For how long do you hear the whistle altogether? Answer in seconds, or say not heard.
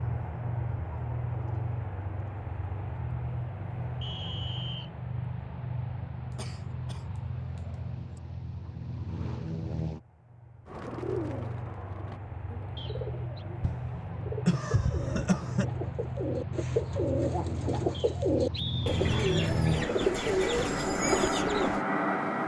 3 s.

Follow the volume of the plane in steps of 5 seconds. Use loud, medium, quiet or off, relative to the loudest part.
medium, medium, medium, loud, loud.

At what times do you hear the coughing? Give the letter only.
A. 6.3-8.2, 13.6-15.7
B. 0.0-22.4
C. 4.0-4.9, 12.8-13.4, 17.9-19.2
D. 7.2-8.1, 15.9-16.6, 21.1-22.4
A.